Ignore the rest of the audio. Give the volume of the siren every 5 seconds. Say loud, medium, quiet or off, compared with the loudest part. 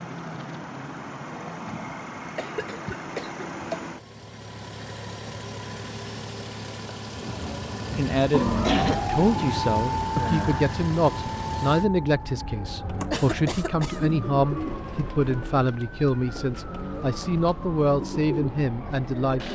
off, loud, medium, quiet.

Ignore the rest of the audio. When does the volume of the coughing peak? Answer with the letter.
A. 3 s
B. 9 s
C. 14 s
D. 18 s
B.